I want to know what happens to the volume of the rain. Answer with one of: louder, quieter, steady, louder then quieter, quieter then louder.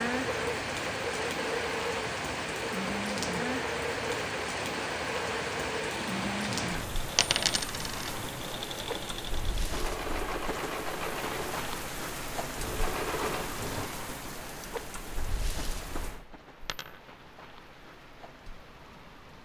quieter.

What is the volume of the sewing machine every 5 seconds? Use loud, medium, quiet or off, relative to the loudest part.
loud, loud, loud, off.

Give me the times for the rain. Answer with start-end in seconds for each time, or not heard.
0.0-19.4.